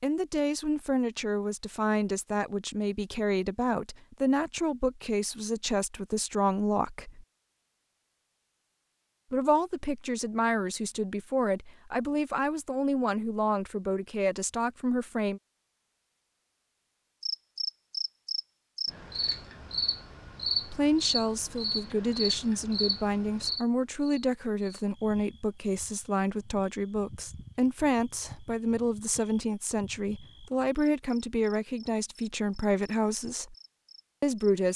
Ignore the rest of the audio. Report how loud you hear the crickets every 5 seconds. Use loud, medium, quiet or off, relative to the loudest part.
off, off, off, loud, loud, quiet, quiet.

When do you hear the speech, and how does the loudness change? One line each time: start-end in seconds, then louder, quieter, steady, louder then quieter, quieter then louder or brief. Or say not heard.
0.0-7.2 steady
9.3-15.4 steady
20.6-33.5 steady
34.2-34.7 brief.